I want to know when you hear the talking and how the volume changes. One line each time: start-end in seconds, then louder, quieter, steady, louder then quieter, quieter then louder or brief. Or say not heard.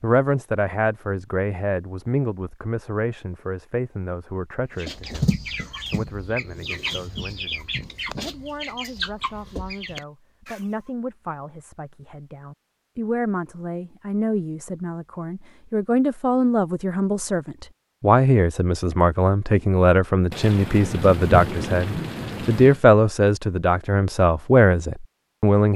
0.0-25.7 quieter then louder.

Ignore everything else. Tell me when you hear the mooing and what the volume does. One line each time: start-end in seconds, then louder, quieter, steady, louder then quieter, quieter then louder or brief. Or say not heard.
not heard.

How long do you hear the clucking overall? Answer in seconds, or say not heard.
6 s.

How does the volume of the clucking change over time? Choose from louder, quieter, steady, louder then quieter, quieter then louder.
quieter.